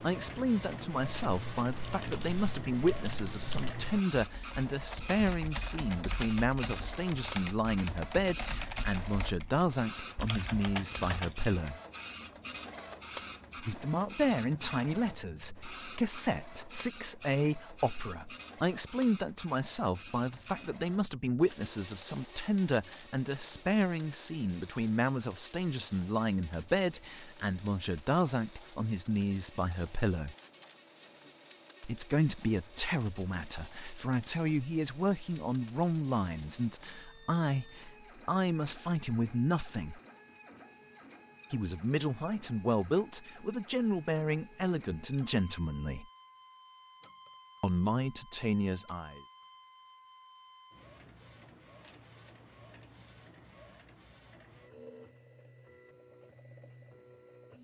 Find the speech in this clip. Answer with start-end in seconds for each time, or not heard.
0.0-11.8, 13.6-30.4, 31.8-40.0, 41.5-46.0, 47.6-49.2.